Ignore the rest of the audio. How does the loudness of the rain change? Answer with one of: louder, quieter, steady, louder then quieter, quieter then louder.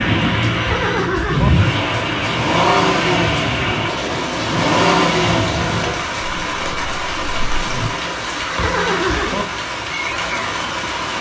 steady.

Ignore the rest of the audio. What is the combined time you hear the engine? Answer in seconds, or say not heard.
8 s.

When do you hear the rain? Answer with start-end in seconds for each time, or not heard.
0.0-11.1.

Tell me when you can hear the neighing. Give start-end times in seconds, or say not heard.
0.5-1.5, 8.3-9.4.